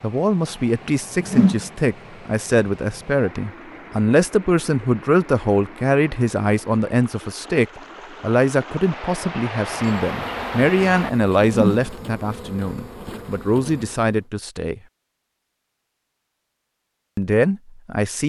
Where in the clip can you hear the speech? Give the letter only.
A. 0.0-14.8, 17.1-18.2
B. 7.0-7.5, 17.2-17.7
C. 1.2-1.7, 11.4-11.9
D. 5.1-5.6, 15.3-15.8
A.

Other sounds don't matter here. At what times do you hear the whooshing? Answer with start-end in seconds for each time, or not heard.
1.2-1.7, 11.4-11.9.